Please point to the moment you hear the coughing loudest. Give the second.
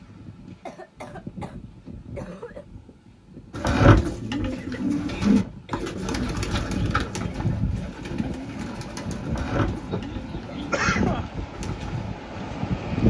11 s.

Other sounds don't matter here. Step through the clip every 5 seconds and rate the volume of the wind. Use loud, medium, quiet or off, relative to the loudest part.
quiet, medium, loud.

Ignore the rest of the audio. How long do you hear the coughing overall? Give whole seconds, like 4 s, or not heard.
5 s.